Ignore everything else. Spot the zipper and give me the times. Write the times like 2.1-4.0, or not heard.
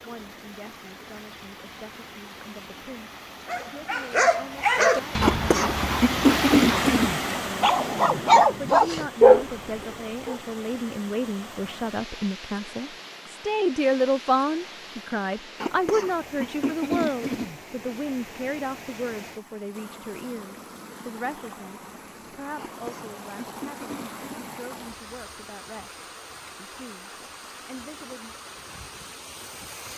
not heard.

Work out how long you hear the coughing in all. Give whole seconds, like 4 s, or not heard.
6 s.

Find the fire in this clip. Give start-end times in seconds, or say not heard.
not heard.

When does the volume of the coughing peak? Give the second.
6 s.